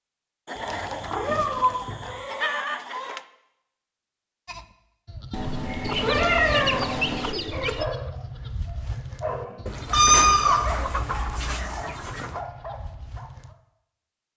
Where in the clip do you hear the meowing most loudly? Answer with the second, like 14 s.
10 s.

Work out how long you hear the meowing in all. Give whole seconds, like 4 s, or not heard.
5 s.